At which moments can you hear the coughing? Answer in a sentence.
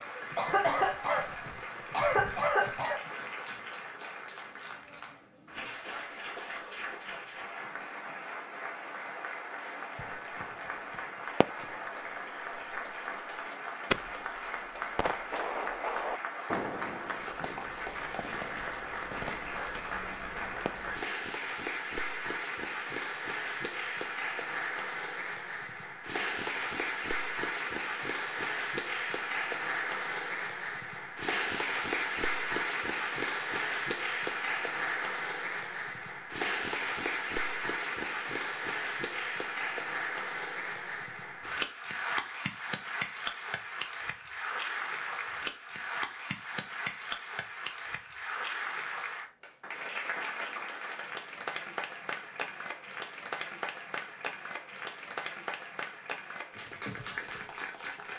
The coughing can be heard from 0.3 to 3.0 s.